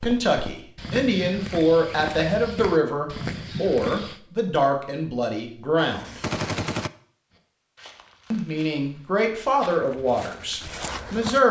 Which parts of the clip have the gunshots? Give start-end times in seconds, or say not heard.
5.8-6.9.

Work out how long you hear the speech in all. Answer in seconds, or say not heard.
9 s.